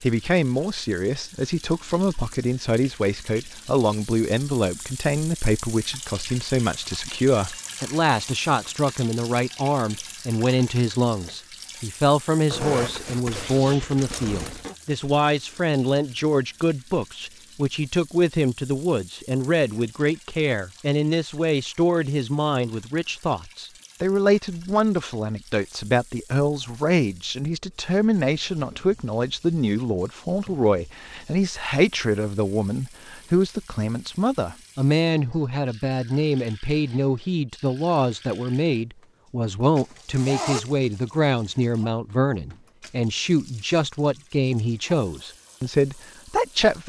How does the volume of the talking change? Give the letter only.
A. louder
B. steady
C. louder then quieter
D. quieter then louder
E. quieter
B.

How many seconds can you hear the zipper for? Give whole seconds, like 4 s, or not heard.
4 s.